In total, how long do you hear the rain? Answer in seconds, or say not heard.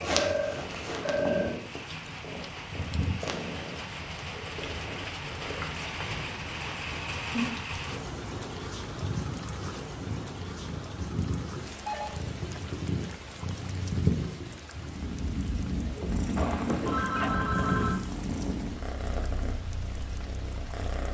21 s.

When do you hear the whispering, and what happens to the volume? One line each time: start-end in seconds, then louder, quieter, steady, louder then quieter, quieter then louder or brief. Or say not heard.
not heard.